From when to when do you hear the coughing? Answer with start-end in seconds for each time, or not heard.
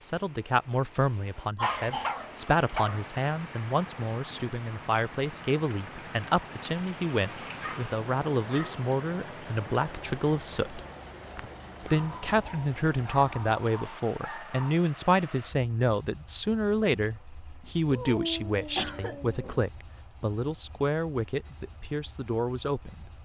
1.6-2.2, 11.3-12.4, 18.8-19.6.